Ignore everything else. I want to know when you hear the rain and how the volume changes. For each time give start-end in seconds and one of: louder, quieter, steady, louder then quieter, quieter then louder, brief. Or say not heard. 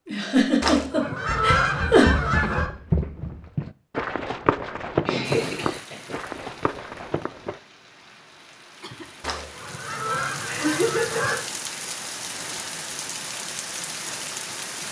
5.2-14.8 louder.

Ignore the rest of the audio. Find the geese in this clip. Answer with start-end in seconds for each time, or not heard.
0.6-2.7, 9.2-11.4.